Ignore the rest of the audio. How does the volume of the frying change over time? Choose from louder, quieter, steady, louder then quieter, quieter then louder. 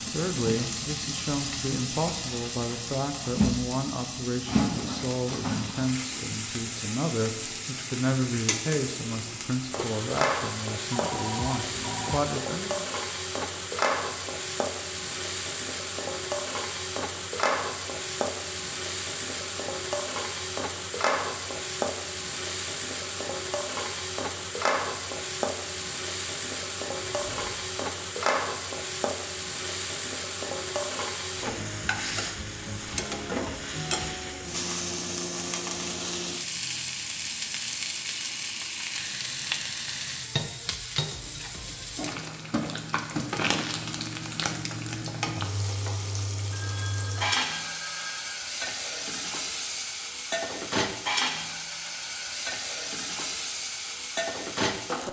steady.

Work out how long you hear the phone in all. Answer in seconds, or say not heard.
4 s.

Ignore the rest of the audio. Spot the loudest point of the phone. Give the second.
11 s.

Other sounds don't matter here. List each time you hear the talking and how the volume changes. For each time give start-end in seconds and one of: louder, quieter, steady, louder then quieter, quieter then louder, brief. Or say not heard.
0.1-12.8 steady.